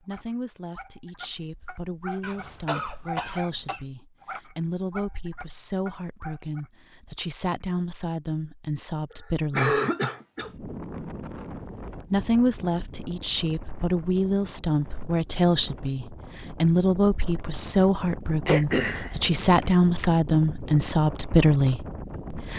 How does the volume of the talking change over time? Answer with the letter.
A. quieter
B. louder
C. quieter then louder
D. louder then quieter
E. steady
B.